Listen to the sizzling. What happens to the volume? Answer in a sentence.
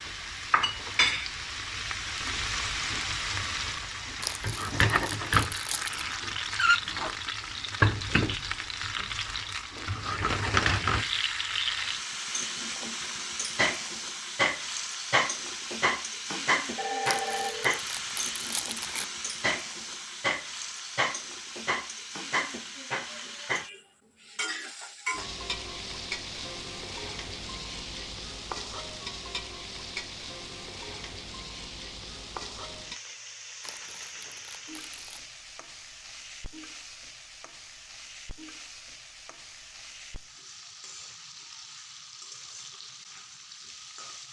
The volume of the sizzling goes down.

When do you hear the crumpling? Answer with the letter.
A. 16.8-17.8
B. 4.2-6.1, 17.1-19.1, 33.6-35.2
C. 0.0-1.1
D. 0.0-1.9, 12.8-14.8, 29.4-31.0
B.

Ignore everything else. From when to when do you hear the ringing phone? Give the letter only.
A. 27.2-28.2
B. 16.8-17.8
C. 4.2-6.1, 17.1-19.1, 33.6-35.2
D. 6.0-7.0
B.